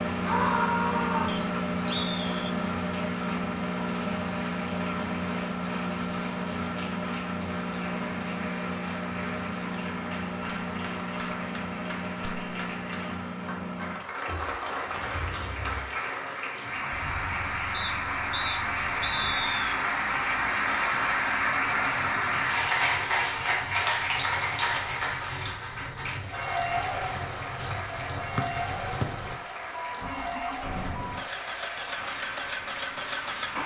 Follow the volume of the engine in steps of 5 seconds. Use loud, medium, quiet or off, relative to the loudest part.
loud, loud, medium, quiet, quiet, medium, medium.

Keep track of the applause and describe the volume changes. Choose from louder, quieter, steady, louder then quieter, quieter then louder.
louder then quieter.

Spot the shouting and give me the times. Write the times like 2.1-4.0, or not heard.
0.2-1.4.